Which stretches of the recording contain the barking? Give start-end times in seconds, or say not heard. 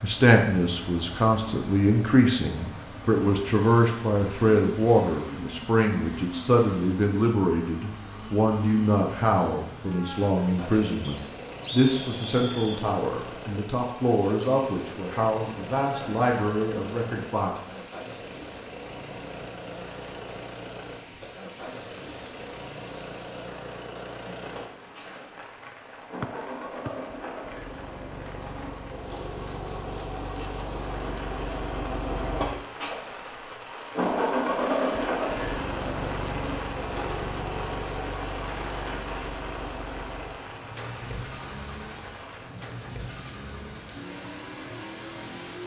not heard.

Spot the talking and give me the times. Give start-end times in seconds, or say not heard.
0.0-17.5.